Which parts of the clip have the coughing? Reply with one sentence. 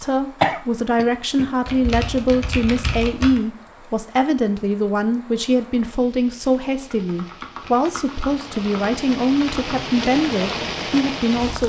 The coughing can be heard from 0.4 to 1.5 s.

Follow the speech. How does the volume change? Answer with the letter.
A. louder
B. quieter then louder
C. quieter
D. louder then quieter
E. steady
E.